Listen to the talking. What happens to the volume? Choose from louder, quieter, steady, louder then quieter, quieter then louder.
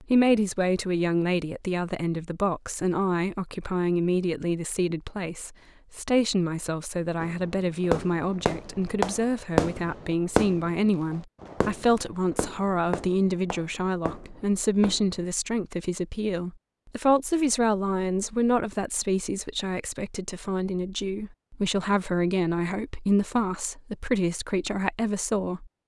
steady.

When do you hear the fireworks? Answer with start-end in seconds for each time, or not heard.
7.2-15.2.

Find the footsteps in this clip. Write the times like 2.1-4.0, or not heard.
not heard.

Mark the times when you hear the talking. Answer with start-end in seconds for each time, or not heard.
0.0-25.8.